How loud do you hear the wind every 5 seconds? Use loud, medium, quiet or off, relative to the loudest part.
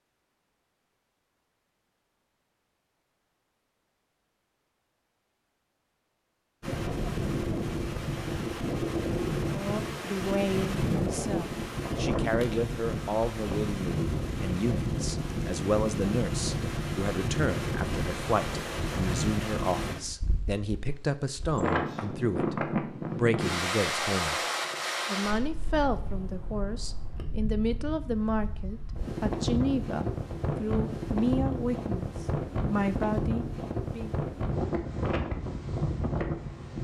off, loud, loud, loud, loud, medium, loud, loud.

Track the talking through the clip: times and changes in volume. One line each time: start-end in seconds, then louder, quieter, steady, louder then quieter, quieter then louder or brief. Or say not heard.
9.5-24.4 steady
25.1-34.1 steady.